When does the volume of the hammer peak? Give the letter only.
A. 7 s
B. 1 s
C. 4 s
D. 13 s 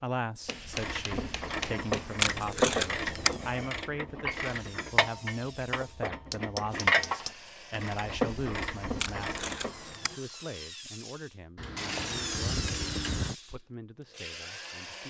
D.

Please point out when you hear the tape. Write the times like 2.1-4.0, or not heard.
2.2-3.4, 8.9-10.2.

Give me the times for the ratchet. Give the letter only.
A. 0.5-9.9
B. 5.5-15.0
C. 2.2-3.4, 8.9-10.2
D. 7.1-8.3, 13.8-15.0
A.